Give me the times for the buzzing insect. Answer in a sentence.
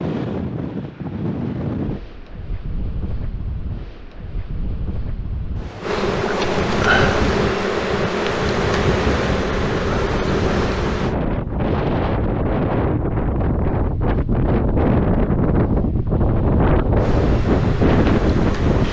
You can hear the buzzing insect from 5.8 to 11.2 s and from 16.9 to 18.8 s.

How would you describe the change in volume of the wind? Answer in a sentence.
The volume of the wind goes up.